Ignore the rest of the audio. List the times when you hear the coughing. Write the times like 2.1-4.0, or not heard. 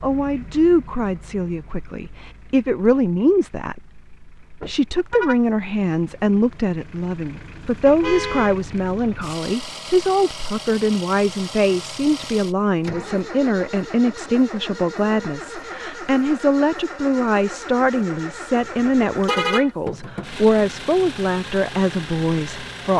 not heard.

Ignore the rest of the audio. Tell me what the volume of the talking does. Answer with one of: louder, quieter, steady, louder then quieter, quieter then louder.
steady.